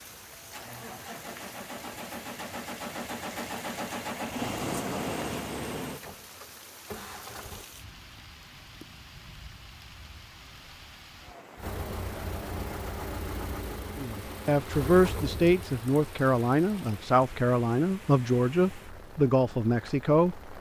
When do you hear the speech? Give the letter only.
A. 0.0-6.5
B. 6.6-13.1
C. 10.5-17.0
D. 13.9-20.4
D.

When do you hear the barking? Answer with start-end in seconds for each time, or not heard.
not heard.